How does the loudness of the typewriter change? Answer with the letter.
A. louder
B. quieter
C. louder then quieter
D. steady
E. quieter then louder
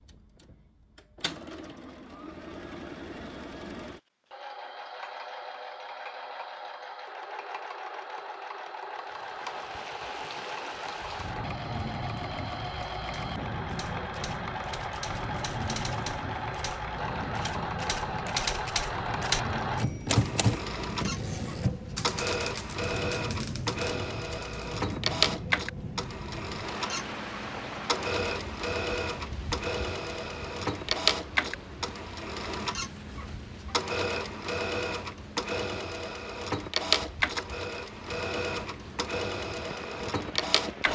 C.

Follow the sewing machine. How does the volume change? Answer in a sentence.
The loudness of the sewing machine goes up.